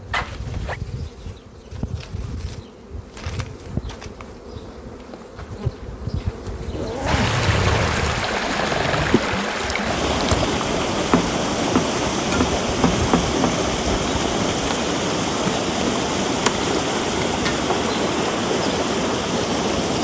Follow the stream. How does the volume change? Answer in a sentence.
The loudness of the stream stays about the same.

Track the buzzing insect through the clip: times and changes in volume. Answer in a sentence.
You can hear the buzzing insect from 0.0 to 19.9 s, getting louder.